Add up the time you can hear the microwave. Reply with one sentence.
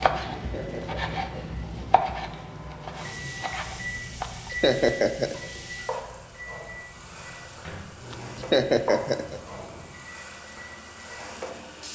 You can hear the microwave for 12 seconds altogether.